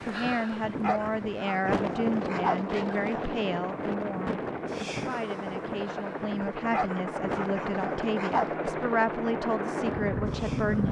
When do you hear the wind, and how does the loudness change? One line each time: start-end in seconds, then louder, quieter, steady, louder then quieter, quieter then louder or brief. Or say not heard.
0.0-10.8 quieter.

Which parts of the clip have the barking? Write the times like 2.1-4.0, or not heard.
0.5-3.2, 6.4-8.5.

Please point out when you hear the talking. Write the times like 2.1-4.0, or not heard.
0.0-10.8.